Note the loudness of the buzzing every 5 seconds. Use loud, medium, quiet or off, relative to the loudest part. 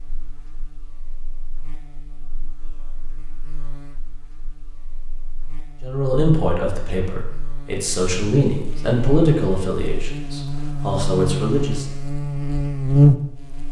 quiet, quiet, loud.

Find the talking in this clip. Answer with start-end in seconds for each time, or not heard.
5.8-11.8.